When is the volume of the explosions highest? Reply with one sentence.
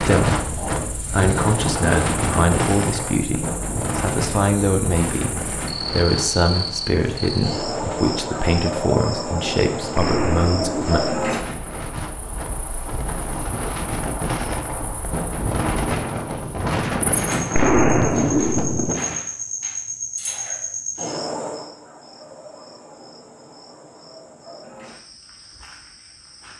The volume of the explosions peaks at 18 seconds.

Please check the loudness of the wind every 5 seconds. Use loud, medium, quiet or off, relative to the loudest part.
loud, medium, medium, loud, off, off.